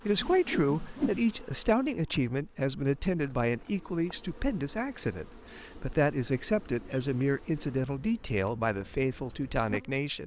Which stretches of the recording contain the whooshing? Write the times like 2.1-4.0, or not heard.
0.1-1.2.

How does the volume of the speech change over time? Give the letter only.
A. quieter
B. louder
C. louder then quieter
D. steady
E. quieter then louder
D.